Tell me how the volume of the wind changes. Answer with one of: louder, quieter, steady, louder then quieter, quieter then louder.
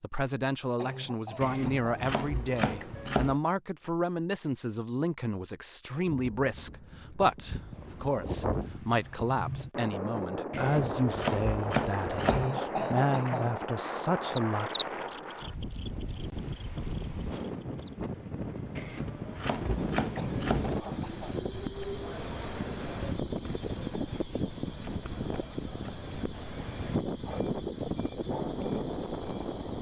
steady.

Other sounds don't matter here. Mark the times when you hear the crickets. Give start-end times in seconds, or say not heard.
14.4-29.7.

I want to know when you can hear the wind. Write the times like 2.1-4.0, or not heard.
6.1-29.7.